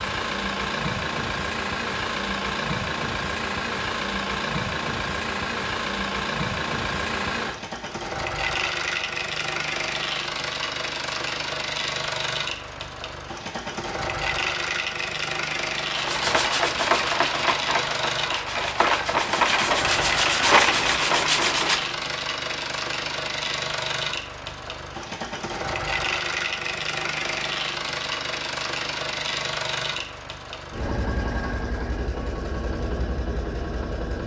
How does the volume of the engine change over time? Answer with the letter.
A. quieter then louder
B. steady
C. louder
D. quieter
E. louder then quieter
B.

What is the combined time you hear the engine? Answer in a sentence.
You can hear the engine for 34 seconds altogether.